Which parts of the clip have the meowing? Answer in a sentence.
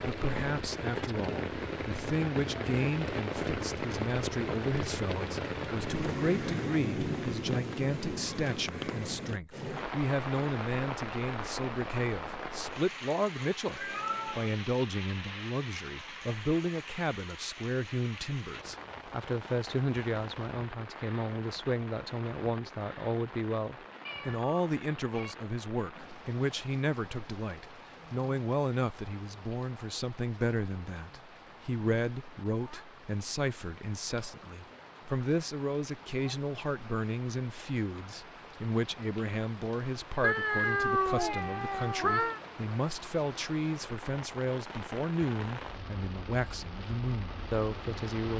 The meowing can be heard from 13.7 to 14.6 s, from 24.1 to 25.4 s and from 40.2 to 42.4 s.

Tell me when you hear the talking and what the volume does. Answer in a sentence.
You can hear the talking from 0.0 to 48.3 s, at a steady volume.